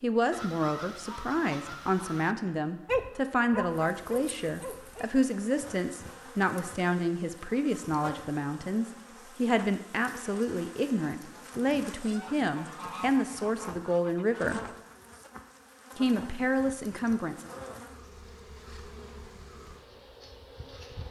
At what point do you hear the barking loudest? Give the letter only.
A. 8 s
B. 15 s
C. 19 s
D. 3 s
D.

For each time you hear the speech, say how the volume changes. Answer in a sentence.
The speech can be heard from 0.0 to 14.6 s, at a steady volume; and briefly from 15.9 to 17.5 s.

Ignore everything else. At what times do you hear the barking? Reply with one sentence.
The barking can be heard from 2.9 to 5.0 s.